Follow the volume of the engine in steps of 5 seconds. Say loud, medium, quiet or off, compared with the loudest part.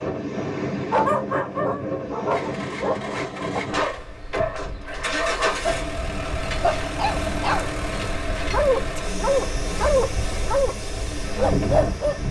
medium, loud, medium.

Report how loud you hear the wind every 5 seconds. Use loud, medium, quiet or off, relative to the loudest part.
loud, medium, loud.